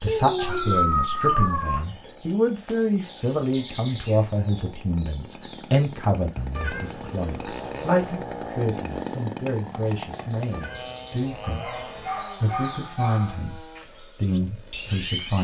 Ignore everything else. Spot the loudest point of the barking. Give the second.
1 s.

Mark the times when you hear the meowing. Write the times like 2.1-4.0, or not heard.
0.1-0.8, 6.5-8.6, 10.5-12.2.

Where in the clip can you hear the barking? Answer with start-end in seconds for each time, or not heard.
0.3-1.8, 11.4-13.4.